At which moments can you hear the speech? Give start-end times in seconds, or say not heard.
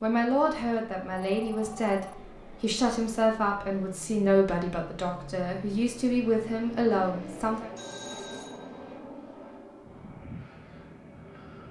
0.0-7.7.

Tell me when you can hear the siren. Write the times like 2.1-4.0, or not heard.
not heard.